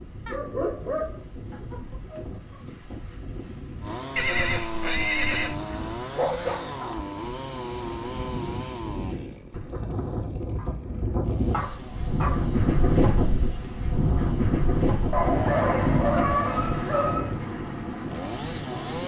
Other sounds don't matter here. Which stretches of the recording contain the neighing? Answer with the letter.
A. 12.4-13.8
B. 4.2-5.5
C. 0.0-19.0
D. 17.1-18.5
B.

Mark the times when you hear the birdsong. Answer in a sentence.
The birdsong can't be heard in this clip.